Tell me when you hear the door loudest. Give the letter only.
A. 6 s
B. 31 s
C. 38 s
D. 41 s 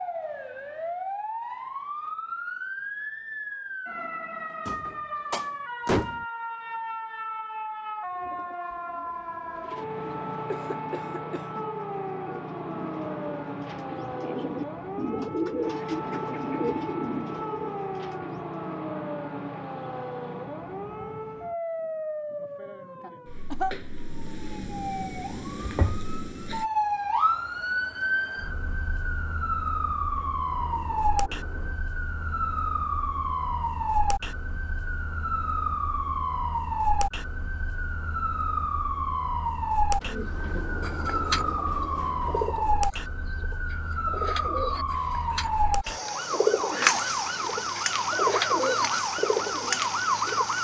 A.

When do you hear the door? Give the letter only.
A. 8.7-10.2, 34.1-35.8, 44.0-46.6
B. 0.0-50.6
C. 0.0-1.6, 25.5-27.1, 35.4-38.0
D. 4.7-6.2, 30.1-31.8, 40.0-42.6
D.